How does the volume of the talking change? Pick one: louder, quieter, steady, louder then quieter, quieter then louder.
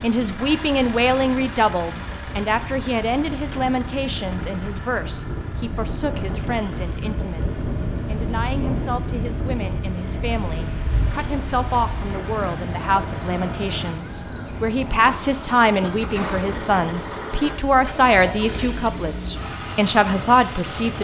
quieter then louder.